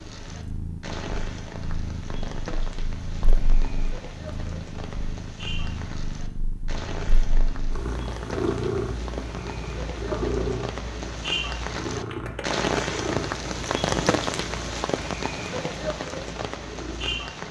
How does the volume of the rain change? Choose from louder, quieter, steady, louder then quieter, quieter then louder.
louder.